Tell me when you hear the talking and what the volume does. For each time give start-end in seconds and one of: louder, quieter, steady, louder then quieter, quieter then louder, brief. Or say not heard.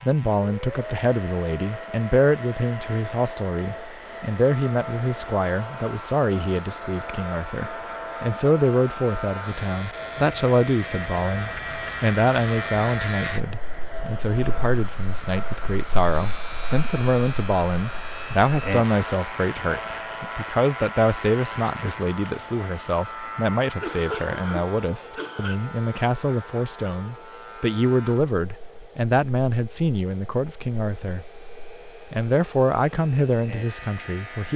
0.0-31.4 steady
32.1-34.5 brief.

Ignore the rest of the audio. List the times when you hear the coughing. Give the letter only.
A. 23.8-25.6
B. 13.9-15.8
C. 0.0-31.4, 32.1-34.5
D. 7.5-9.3
A.